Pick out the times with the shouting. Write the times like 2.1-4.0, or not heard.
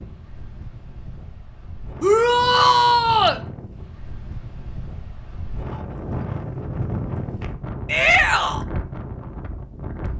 2.0-3.4, 7.8-8.7.